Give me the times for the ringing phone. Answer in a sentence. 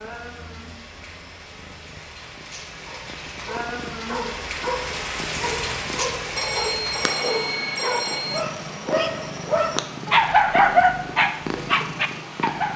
The ringing phone can be heard from 6.3 to 8.4 s.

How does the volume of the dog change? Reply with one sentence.
The volume of the dog goes up.